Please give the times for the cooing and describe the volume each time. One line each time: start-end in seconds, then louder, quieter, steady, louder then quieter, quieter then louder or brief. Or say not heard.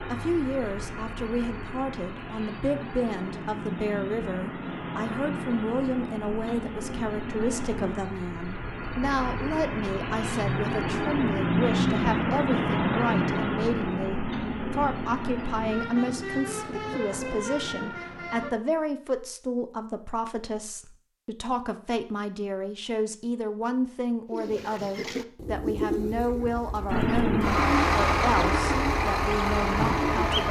24.3-30.4 steady.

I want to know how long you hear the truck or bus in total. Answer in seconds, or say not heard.
22 s.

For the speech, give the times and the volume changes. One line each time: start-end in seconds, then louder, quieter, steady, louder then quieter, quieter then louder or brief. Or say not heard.
0.1-30.4 steady.